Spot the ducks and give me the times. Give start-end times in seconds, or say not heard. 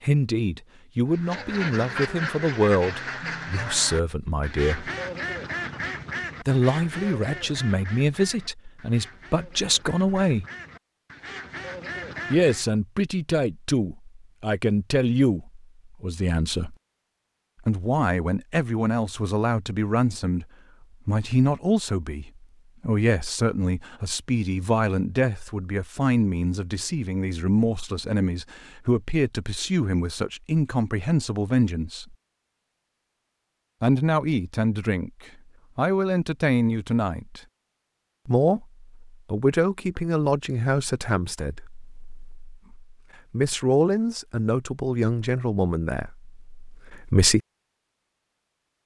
1.1-12.7.